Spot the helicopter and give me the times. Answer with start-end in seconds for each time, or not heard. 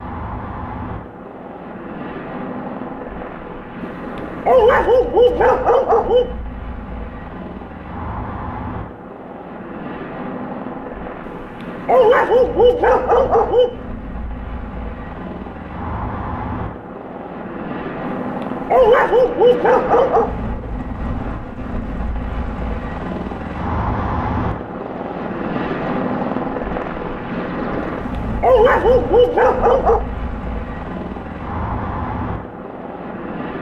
0.0-33.5.